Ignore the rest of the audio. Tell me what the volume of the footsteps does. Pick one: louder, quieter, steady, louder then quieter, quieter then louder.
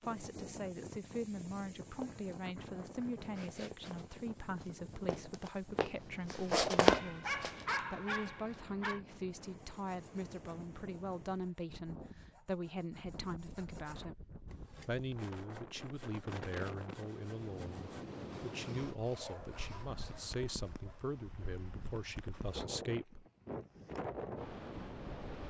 louder.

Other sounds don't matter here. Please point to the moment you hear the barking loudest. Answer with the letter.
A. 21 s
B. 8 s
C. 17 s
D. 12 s
B.